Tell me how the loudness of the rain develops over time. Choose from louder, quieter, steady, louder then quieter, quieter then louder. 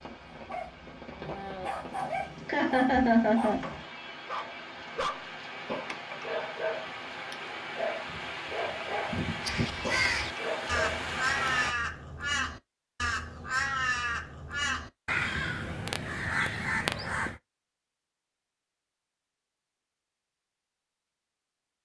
louder.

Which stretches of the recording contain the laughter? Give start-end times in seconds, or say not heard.
2.5-3.6.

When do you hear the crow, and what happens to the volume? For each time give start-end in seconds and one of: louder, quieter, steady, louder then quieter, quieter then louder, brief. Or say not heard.
9.4-17.4 steady.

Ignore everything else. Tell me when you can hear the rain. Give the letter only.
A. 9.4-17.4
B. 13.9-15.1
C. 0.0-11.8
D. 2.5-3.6
C.